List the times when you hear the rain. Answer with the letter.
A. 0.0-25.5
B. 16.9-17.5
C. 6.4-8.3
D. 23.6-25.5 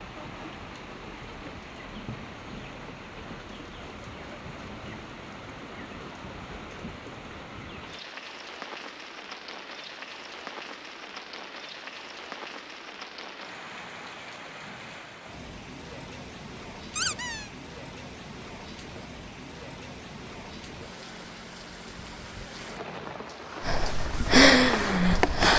A.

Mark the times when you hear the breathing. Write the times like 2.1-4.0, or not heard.
23.6-25.5.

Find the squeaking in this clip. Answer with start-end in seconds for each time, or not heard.
16.9-17.5.